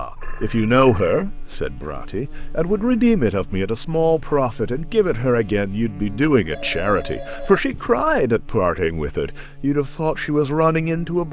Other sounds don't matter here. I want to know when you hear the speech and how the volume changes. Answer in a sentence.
You can hear the speech from 0.0 to 11.2 s, at a steady volume.